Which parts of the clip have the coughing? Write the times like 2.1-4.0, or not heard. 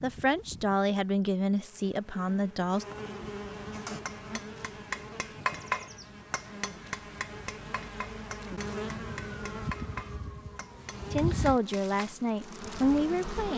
not heard.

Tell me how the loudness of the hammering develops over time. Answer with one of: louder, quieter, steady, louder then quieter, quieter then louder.
quieter.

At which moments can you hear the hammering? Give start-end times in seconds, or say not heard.
3.7-12.2.